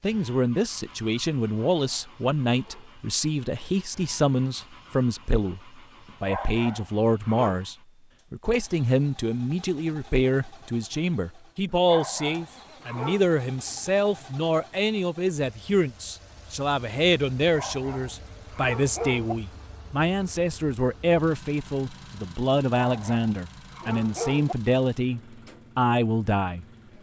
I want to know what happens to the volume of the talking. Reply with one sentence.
The loudness of the talking stays about the same.